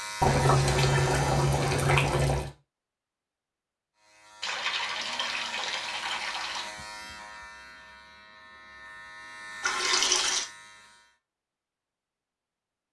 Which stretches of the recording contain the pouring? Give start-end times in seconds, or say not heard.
0.2-2.5, 4.4-6.7, 9.6-10.4.